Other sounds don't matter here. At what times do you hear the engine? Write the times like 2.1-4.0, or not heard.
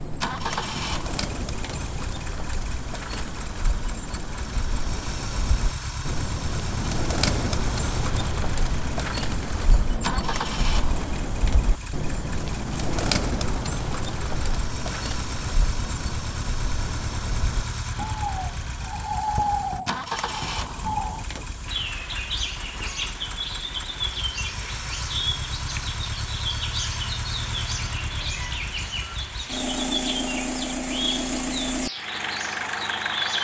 0.0-33.4.